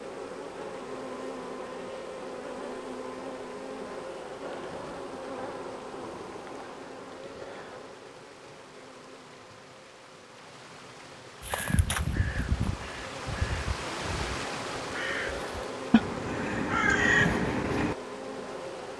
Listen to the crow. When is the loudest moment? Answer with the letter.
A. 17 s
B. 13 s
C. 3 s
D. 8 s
A.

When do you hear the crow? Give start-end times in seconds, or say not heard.
11.4-17.9.